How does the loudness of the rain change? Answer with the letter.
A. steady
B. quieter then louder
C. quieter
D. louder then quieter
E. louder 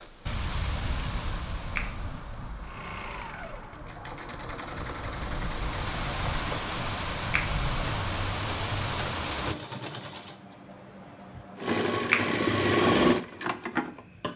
B.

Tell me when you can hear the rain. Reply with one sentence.
The rain can be heard from 0.0 to 9.6 s.